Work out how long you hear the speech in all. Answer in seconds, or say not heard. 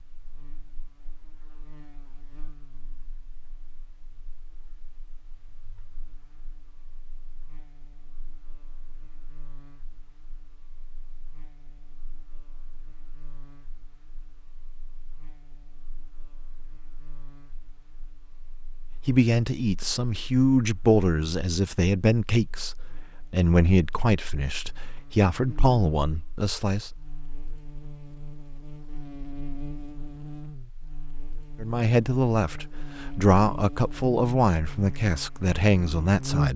13 s.